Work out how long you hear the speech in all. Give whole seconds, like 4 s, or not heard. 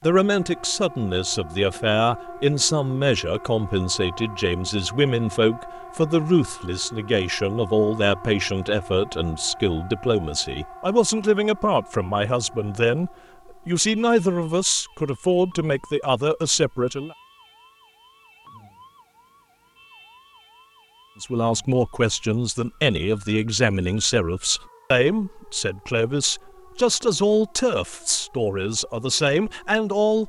26 s.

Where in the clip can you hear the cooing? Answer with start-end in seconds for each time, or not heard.
not heard.